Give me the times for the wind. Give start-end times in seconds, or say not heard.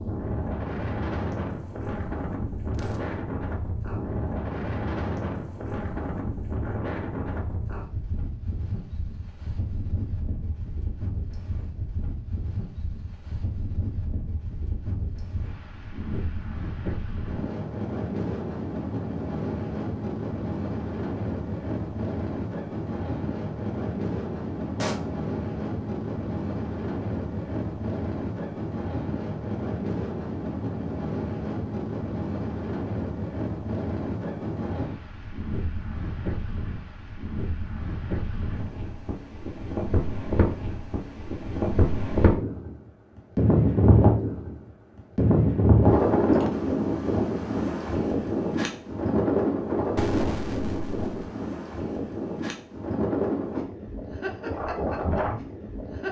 0.0-56.0.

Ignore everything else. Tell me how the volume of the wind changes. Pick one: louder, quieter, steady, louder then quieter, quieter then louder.
louder.